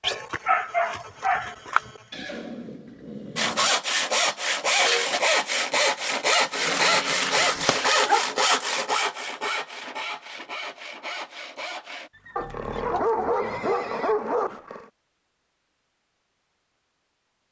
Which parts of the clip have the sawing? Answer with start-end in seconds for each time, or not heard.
3.4-12.1.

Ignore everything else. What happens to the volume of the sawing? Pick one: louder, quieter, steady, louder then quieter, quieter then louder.
quieter.